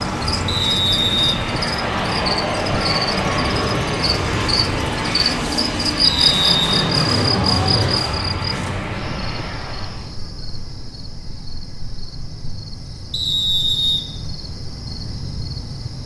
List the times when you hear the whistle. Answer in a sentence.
The whistle can be heard from 0.5 to 1.4 s, from 6.0 to 6.7 s and from 13.1 to 14.0 s.